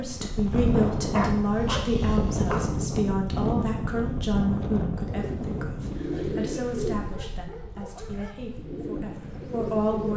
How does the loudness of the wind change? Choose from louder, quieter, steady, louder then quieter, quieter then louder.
quieter.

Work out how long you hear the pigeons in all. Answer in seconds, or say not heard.
4 s.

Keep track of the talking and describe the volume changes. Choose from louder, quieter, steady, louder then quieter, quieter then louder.
quieter.